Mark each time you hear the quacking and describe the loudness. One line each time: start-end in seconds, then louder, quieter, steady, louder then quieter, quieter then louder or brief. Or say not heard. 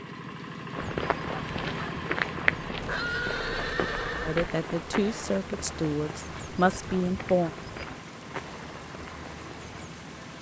not heard.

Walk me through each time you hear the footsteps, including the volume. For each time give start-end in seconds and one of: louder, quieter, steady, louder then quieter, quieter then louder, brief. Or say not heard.
0.7-10.0 quieter.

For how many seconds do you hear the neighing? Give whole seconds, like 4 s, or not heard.
2 s.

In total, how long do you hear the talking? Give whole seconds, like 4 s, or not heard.
3 s.